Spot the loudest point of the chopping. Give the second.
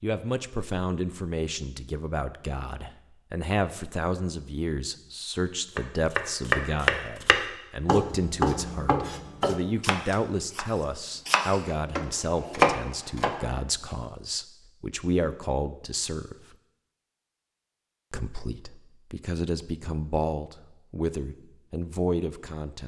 13 s.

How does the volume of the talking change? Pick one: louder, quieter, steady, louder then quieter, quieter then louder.
steady.